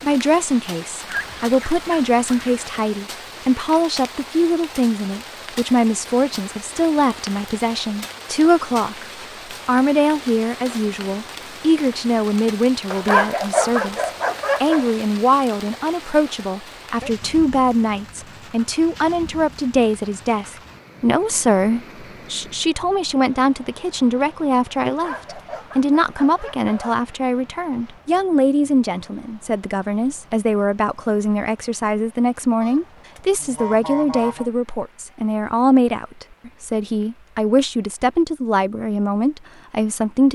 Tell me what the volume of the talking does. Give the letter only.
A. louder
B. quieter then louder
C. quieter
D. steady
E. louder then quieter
D.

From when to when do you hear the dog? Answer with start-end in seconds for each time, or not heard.
12.9-14.8, 24.9-27.0.